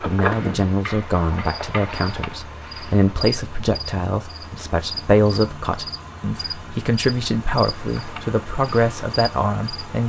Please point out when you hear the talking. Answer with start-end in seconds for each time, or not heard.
0.0-10.0.